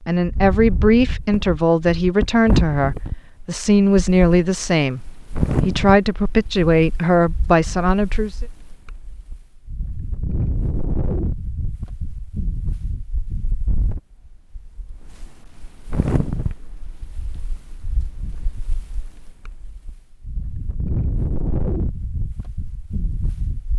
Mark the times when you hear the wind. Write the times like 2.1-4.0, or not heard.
0.1-23.7.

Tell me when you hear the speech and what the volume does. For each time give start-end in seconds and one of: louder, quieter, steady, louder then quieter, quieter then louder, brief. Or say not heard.
0.1-8.4 steady.